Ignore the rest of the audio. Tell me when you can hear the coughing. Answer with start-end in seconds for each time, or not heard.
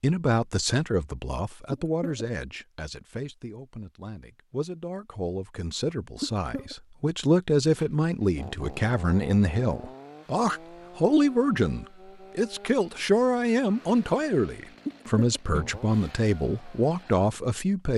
1.7-2.2, 6.2-6.8, 14.8-15.8.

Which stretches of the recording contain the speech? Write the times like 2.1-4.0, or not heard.
0.0-17.9.